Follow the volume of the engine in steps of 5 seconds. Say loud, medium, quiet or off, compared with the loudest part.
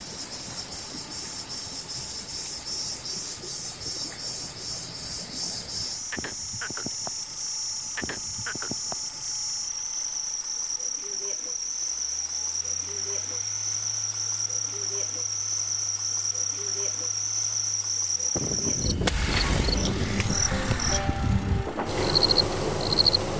quiet, quiet, quiet, medium, loud.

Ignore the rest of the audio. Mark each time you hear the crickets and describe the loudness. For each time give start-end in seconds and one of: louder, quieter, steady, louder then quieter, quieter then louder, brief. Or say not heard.
0.0-23.2 louder.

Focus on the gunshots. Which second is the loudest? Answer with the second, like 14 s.
19 s.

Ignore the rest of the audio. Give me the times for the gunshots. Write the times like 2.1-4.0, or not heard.
18.4-20.4.